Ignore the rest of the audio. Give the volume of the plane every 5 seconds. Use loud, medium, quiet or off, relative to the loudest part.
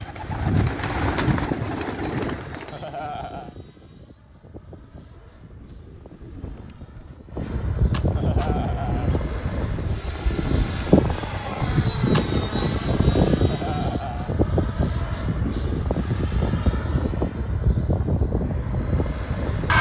quiet, medium, loud, loud.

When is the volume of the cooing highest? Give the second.
1 s.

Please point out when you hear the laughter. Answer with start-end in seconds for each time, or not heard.
2.7-3.5, 8.2-9.2, 13.3-14.3.